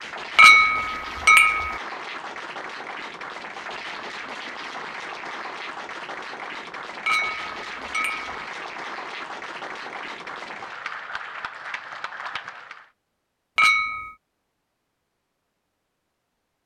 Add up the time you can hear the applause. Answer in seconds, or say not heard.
13 s.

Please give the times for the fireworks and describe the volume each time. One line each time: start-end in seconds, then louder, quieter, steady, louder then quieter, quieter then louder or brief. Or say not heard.
not heard.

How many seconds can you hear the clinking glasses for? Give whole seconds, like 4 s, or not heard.
3 s.